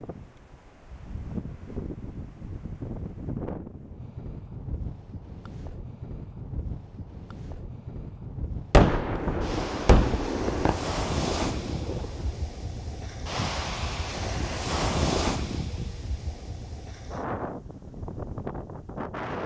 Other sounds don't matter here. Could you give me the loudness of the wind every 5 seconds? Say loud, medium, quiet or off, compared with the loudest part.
medium, medium, loud, loud.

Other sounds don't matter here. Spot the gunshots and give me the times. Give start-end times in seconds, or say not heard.
8.7-12.3.